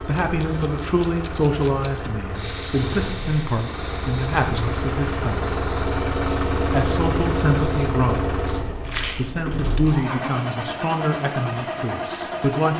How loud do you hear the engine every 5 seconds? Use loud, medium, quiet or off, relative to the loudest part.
medium, loud, loud.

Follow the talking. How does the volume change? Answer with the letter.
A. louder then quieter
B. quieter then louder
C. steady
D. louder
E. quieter
C.